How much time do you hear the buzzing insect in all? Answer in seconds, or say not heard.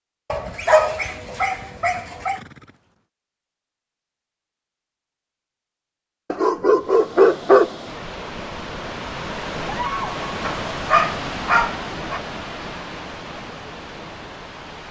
not heard.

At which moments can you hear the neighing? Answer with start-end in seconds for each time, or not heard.
2.3-3.0.